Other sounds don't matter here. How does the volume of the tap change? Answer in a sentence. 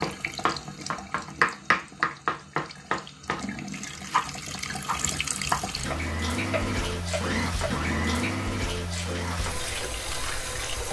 The volume of the tap goes up.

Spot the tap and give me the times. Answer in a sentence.
You can hear the tap from 0.0 to 10.8 s.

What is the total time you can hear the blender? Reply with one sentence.
You can hear the blender for 5 seconds altogether.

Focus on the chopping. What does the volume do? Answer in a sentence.
The volume of the chopping goes down.